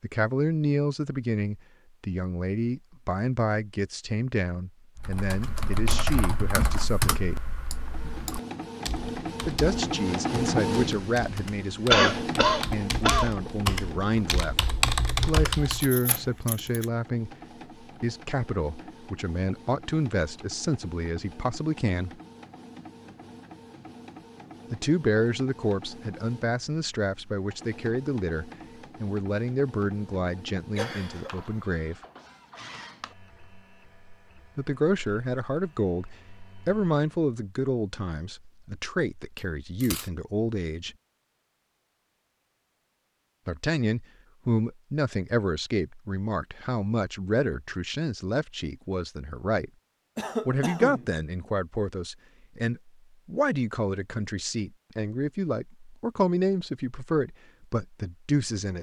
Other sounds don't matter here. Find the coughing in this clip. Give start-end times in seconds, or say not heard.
11.9-13.3, 30.8-31.6, 50.1-51.1.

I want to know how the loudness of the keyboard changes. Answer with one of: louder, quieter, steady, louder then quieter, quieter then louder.
quieter then louder.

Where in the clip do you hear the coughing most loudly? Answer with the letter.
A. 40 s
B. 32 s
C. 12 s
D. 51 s
C.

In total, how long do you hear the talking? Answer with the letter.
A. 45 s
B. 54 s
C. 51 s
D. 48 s
D.